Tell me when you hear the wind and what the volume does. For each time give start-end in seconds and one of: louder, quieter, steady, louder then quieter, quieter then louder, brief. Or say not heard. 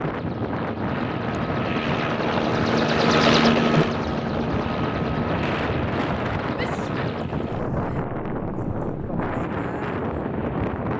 0.0-10.9 steady.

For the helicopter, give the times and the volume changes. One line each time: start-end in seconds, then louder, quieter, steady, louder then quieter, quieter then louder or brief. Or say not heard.
0.0-10.8 louder then quieter.